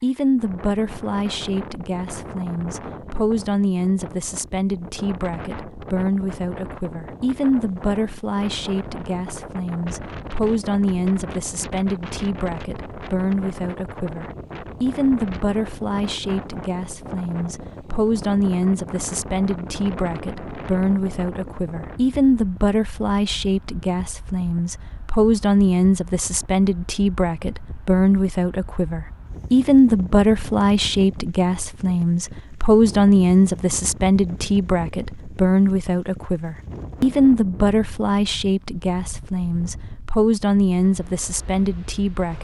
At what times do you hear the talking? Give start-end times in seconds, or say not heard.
0.0-42.3.